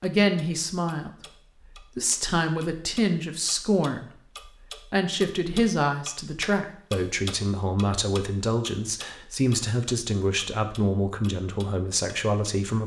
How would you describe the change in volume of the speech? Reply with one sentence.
The loudness of the speech stays about the same.